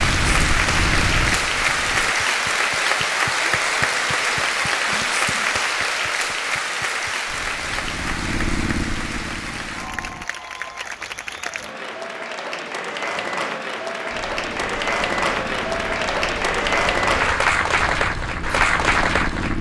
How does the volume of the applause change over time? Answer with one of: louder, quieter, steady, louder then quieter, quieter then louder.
quieter then louder.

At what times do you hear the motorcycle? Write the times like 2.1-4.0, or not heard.
0.0-2.1, 7.2-10.3, 14.1-19.5.